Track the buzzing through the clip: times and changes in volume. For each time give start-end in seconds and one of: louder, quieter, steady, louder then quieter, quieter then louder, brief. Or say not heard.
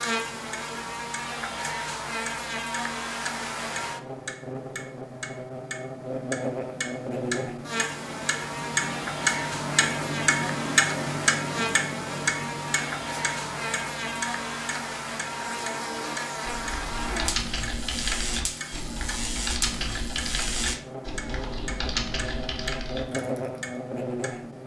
0.0-24.6 steady.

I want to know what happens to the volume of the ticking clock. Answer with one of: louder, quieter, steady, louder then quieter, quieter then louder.
louder then quieter.